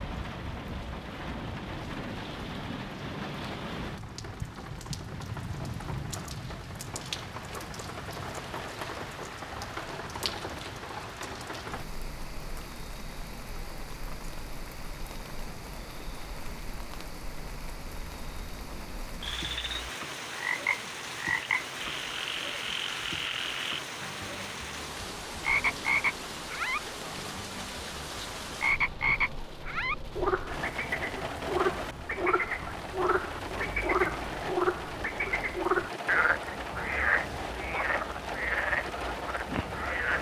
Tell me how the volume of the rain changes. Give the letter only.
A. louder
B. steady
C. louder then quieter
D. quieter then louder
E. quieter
B.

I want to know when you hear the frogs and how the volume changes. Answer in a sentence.
The frogs can be heard from 19.2 to 40.1 s, at a steady volume.